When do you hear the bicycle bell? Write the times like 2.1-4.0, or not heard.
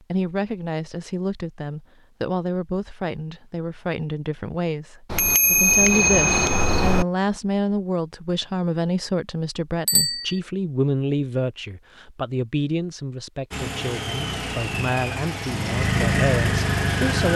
5.1-7.0, 9.8-10.4.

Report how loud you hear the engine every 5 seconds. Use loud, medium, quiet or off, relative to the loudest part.
off, off, medium, loud.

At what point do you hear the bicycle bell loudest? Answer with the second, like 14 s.
6 s.